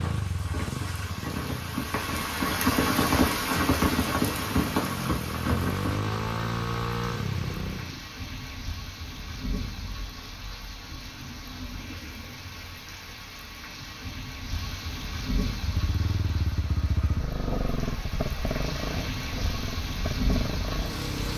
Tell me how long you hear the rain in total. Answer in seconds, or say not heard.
21 s.